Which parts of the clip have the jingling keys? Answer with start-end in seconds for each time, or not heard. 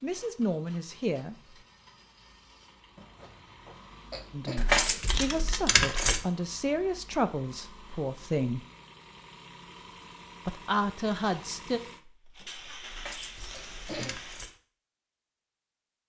4.5-6.2, 12.9-14.5.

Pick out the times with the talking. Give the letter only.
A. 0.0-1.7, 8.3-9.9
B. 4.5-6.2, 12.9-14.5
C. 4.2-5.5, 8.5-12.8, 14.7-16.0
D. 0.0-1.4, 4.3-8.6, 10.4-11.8
D.